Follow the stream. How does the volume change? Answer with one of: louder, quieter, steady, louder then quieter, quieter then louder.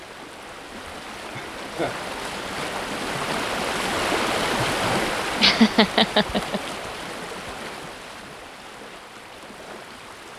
louder then quieter.